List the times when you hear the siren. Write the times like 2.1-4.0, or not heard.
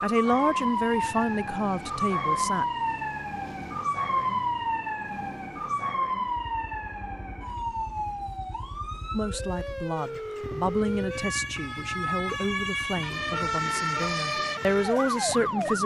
0.0-15.8.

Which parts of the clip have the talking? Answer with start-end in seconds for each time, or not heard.
0.0-2.6, 9.1-15.8.